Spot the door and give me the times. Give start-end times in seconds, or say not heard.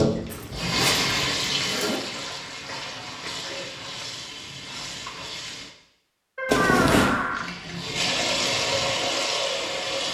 6.3-7.5.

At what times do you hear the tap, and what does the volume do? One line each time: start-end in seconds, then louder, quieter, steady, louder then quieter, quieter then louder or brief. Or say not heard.
0.0-5.8 quieter
7.3-10.0 brief.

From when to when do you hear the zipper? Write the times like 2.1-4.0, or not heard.
0.2-2.0, 6.5-7.2.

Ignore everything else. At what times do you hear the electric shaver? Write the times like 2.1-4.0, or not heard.
not heard.